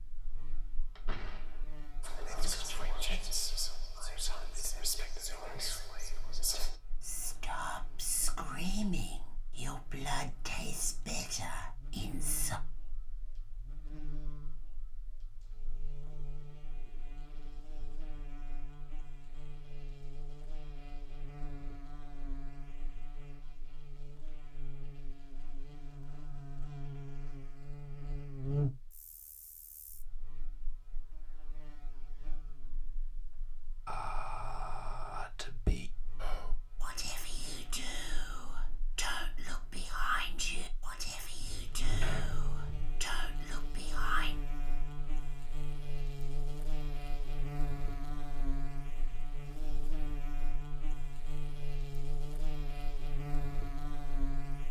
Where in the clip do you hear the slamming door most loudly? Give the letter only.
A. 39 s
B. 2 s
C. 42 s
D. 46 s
C.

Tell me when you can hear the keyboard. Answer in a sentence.
The keyboard can't be heard in this clip.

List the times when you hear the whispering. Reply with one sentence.
The whispering can be heard from 2.0 to 12.6 s and from 33.9 to 44.4 s.